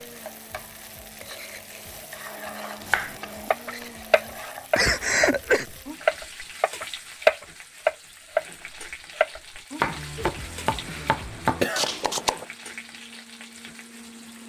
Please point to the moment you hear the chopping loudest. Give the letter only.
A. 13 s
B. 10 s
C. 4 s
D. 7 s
D.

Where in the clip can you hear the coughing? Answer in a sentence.
The coughing can be heard from 4.8 to 5.7 s and from 10.2 to 11.9 s.